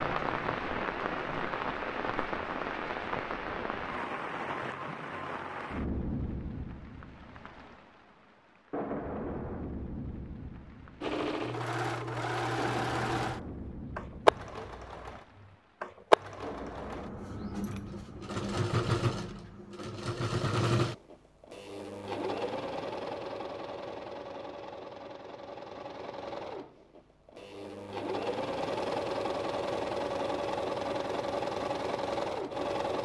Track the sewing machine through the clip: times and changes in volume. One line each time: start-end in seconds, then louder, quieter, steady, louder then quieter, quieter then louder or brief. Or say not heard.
11.0-33.0 quieter then louder.